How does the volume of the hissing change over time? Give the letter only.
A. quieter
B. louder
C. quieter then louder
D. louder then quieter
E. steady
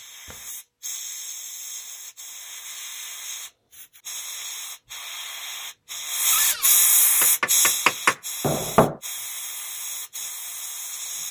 D.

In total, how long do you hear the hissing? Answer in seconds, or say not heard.
11 s.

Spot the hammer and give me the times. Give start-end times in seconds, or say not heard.
7.2-9.0.